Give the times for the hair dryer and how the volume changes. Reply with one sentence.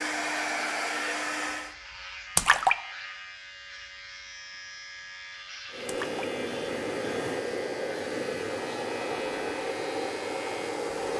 The hair dryer can be heard briefly from 0.0 to 1.8 s; and from 5.7 to 11.1 s, at a steady volume.